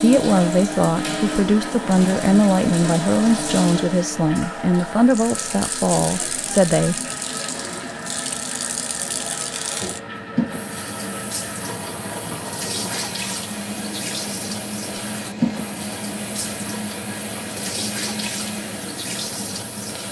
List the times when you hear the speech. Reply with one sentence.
The speech can be heard from 0.0 to 7.0 s.